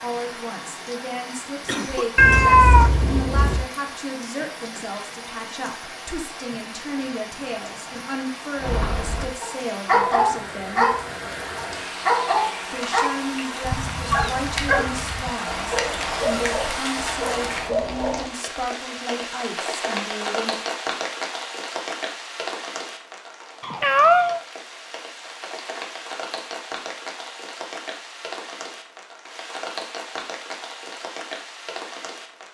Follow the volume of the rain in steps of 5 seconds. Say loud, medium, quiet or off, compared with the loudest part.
medium, medium, loud, loud, loud, medium, medium.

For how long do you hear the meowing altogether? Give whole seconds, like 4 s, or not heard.
4 s.